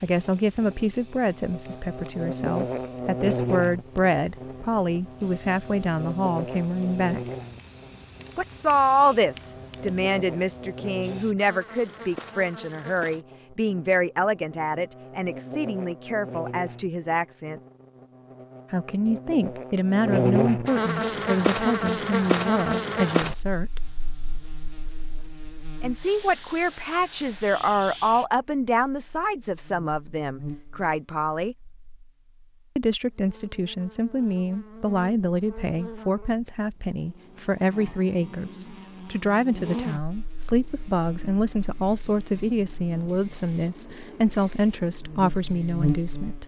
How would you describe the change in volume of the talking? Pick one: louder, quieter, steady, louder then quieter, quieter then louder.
steady.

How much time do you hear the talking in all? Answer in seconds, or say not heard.
41 s.